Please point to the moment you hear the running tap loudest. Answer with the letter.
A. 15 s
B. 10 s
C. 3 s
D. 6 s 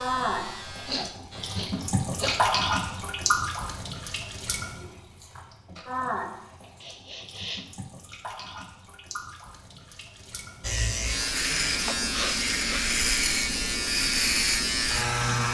C.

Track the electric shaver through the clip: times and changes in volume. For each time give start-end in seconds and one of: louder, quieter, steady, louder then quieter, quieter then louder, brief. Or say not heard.
0.0-1.6 brief
10.6-15.4 steady.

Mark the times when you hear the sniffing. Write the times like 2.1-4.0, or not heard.
0.8-2.5, 6.8-7.7, 11.8-12.9.